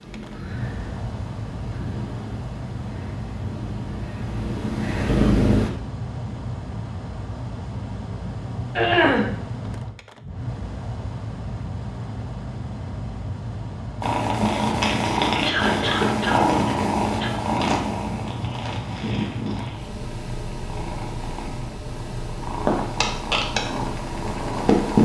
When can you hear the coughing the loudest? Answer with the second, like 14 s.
9 s.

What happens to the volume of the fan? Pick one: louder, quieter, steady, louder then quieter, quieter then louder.
steady.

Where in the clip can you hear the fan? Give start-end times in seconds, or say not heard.
0.0-24.9.